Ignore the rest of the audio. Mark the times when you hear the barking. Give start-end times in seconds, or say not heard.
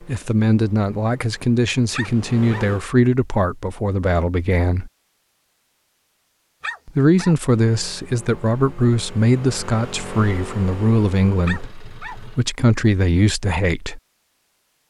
1.9-2.6, 6.6-7.3, 11.4-12.2.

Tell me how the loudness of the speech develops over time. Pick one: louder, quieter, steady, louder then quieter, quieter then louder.
steady.